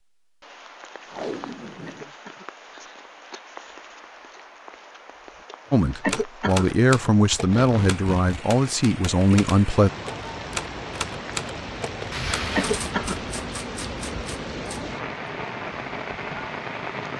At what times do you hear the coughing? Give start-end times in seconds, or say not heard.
1.9-2.5, 6.0-6.7, 12.6-13.2.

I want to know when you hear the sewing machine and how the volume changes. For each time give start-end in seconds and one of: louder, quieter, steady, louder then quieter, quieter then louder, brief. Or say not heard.
not heard.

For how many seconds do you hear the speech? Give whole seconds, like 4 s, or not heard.
4 s.